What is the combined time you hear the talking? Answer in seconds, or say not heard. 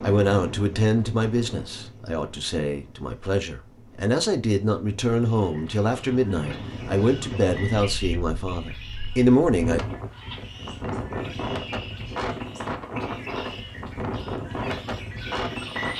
10 s.